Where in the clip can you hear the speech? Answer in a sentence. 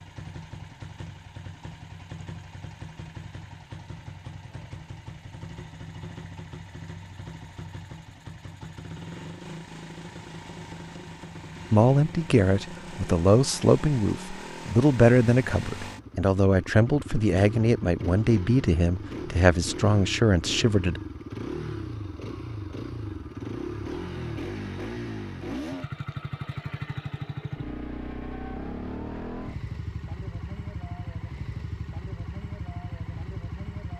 You can hear the speech from 11.7 to 21.0 s.